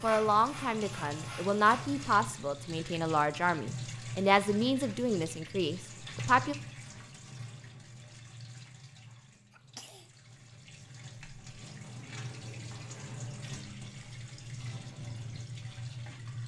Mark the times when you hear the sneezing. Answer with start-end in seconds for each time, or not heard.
9.5-10.1.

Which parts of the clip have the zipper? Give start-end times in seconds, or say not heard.
not heard.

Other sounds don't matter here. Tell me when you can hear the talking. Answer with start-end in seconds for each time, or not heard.
0.0-6.5.